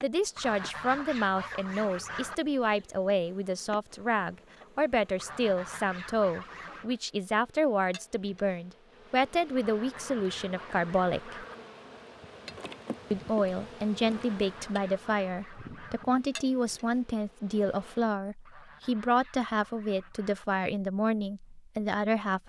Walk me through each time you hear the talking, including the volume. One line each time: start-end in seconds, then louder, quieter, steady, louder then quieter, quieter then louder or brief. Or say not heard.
0.0-11.4 steady
13.1-22.4 steady.